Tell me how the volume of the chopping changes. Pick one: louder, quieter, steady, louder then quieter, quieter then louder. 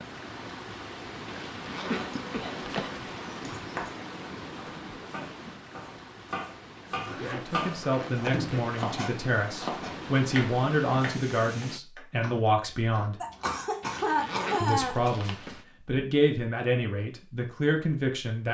louder then quieter.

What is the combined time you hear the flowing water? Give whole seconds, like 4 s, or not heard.
12 s.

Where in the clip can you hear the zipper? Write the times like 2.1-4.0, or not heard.
1.2-3.1, 7.0-8.8, 13.8-15.7.